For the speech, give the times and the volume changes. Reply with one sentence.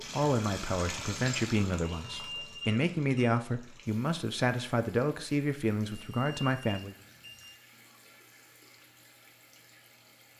You can hear the speech from 0.0 to 7.0 s, at a steady volume.